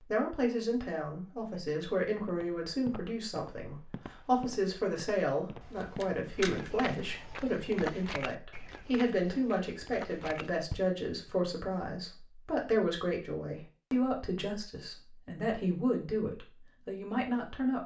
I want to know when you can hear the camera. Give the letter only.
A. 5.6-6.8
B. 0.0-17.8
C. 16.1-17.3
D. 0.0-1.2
A.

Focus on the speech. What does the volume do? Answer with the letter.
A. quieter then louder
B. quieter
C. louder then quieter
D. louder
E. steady
E.